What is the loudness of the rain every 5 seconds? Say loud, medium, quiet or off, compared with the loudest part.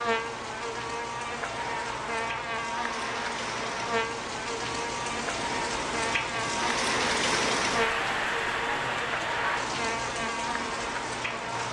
medium, loud, medium.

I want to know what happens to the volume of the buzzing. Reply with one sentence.
The volume of the buzzing stays about the same.